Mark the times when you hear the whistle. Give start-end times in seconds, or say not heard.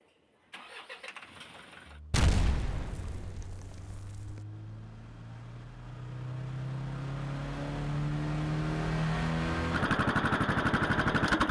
not heard.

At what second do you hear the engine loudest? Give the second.
11 s.